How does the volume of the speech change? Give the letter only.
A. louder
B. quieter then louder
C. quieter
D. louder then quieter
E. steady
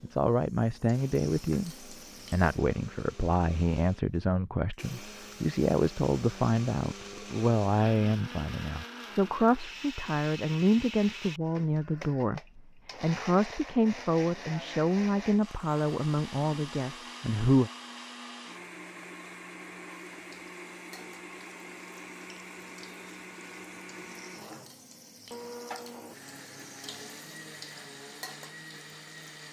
E.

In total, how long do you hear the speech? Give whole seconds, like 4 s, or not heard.
18 s.